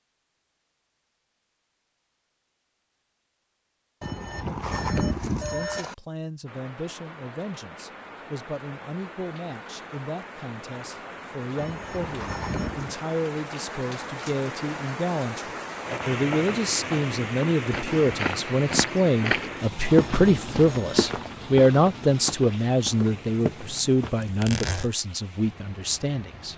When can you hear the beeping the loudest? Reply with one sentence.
The loudest moment of the beeping is at 5 seconds.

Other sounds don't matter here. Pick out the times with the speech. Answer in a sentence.
You can hear the speech from 5.3 to 26.5 s.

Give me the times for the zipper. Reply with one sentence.
The zipper can be heard from 24.1 to 24.9 s.